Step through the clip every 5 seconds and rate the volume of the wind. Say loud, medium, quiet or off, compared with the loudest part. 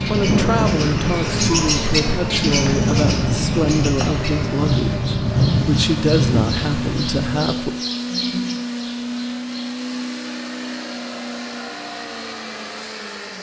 loud, loud, off.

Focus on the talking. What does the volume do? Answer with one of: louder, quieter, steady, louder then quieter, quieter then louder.
steady.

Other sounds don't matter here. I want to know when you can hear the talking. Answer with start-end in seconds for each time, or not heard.
0.1-7.8.